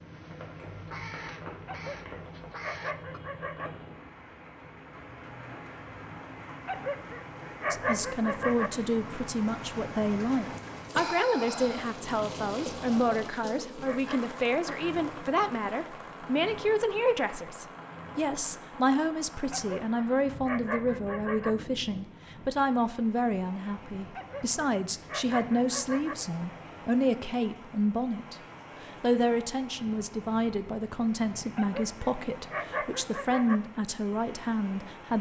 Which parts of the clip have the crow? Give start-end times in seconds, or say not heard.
0.0-3.2.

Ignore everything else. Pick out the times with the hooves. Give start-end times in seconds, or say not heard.
not heard.